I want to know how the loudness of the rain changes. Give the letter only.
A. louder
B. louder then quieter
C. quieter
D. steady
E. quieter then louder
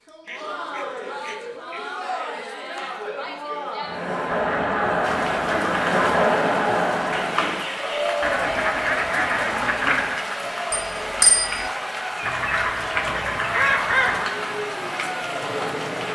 D.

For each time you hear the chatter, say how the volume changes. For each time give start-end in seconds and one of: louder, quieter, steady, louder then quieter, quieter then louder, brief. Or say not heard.
0.0-16.1 louder then quieter.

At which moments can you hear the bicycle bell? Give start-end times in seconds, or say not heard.
10.7-11.7.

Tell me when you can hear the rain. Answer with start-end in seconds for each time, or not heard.
5.0-16.1.